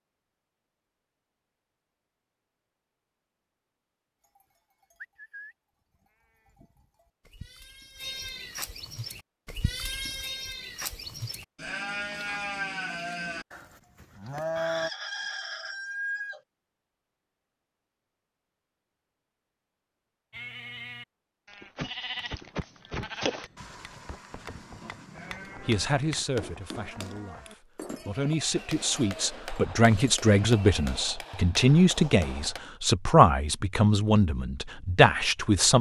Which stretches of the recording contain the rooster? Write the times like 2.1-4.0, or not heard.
14.6-16.4.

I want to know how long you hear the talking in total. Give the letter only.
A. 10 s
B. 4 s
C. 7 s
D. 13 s
A.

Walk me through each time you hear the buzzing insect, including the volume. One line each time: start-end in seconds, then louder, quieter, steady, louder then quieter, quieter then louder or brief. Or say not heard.
not heard.